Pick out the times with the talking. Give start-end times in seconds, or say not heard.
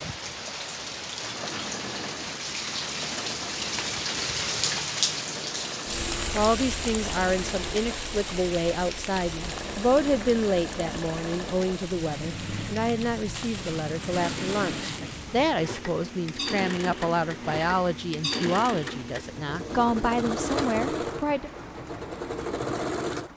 6.3-21.5.